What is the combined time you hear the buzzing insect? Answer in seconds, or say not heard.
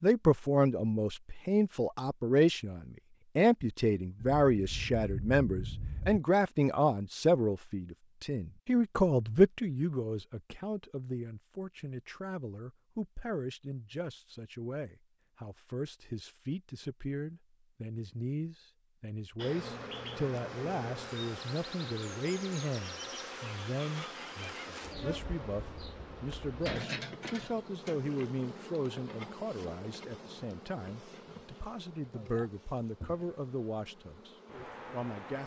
16 s.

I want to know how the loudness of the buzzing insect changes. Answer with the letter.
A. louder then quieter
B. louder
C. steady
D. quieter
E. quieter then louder
D.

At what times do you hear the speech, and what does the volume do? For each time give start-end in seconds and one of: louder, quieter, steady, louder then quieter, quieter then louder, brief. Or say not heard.
0.0-34.3 quieter
34.9-35.4 brief.